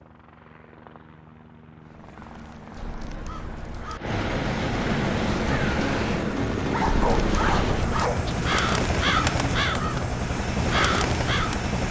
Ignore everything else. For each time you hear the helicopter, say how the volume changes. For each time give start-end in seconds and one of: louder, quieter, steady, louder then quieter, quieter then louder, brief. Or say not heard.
0.0-11.8 louder.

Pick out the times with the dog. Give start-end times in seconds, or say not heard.
6.7-8.2.